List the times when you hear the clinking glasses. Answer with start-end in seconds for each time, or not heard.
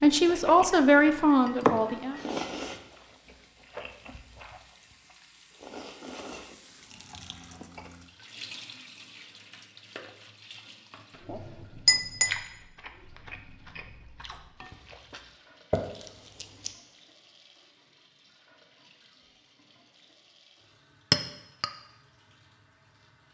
0.7-2.2, 11.2-12.3, 21.1-21.6.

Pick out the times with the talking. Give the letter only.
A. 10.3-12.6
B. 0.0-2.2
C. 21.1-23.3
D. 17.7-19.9
B.